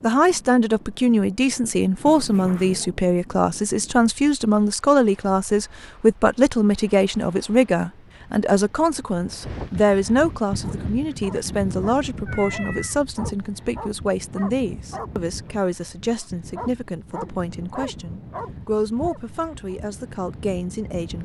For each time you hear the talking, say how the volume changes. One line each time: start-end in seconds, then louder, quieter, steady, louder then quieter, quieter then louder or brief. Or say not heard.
0.0-21.2 quieter.